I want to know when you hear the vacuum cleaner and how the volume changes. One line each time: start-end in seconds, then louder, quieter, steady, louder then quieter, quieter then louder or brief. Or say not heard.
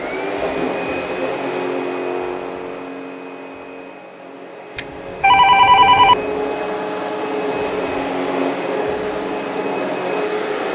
0.0-10.7 quieter then louder.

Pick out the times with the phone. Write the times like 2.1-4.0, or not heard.
4.8-6.2.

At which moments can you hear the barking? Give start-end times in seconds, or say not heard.
not heard.